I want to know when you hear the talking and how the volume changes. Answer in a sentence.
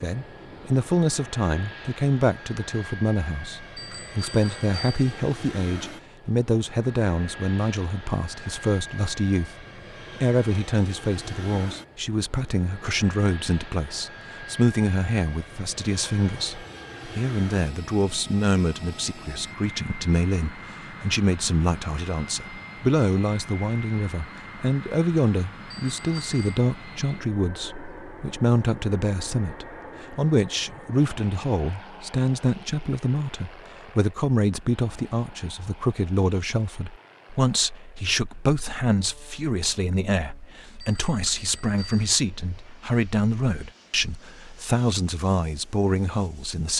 The talking can be heard from 0.0 to 46.7 s, at a steady volume.